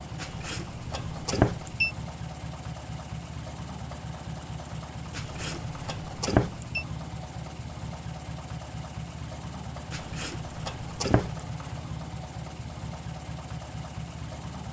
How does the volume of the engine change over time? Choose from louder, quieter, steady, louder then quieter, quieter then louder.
steady.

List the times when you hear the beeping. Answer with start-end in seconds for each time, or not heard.
0.2-1.9, 5.1-6.8, 9.9-11.4.